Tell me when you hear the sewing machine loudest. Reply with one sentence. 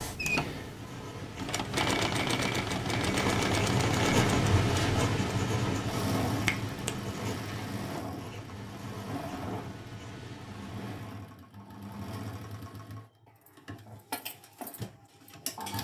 The loudest moment of the sewing machine is at 2 seconds.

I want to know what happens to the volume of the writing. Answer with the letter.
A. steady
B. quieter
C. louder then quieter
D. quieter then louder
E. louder
C.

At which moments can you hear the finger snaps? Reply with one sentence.
You can hear the finger snaps from 6.2 to 7.0 s.